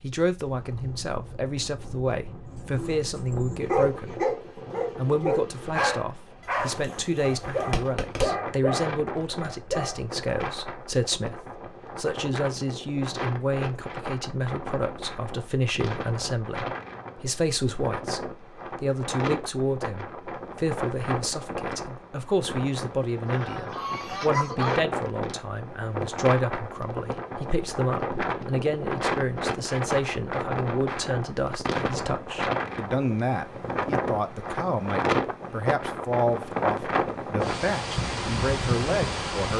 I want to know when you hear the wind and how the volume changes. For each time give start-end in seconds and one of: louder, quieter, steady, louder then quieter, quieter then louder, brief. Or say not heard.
0.0-39.5 louder.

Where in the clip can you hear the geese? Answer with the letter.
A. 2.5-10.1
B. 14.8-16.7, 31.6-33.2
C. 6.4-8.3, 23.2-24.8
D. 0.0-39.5
C.